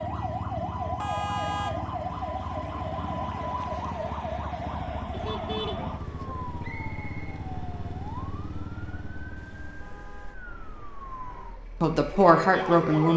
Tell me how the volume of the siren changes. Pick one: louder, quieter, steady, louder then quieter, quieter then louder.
quieter then louder.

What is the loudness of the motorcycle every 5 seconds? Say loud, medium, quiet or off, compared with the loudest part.
loud, loud, off.